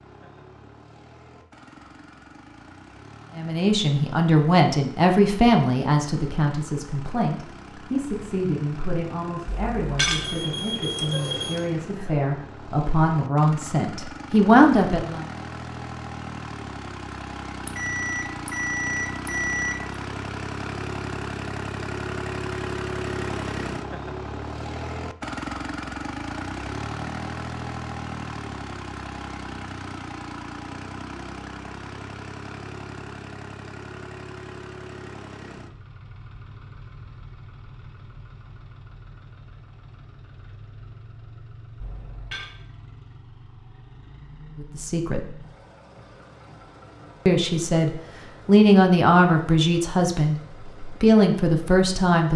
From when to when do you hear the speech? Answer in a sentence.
The speech can be heard from 3.4 to 15.2 s, from 44.6 to 45.4 s and from 47.2 to 52.3 s.